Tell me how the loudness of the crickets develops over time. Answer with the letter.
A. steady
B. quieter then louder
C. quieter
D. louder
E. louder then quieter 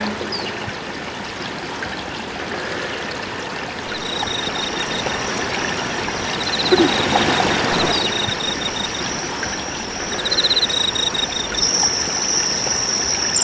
D.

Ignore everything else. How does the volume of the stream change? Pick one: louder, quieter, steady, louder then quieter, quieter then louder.
louder then quieter.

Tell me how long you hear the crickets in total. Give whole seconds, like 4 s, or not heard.
9 s.